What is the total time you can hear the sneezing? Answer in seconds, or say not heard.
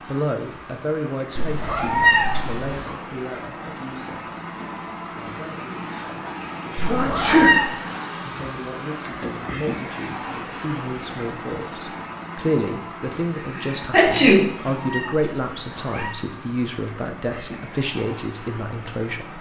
2 s.